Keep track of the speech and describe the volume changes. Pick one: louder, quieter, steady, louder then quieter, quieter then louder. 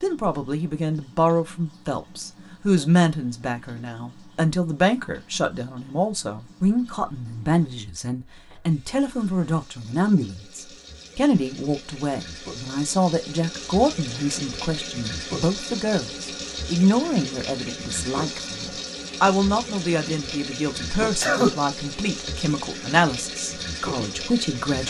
steady.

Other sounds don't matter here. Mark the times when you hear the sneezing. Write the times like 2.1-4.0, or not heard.
21.0-21.6.